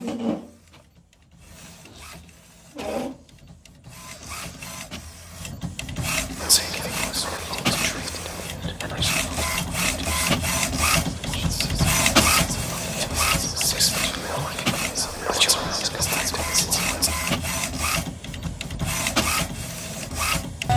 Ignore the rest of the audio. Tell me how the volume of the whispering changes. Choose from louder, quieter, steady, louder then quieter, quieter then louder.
louder.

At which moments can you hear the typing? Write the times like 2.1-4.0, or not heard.
not heard.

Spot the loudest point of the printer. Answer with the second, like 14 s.
12 s.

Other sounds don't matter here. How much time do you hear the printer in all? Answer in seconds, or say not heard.
21 s.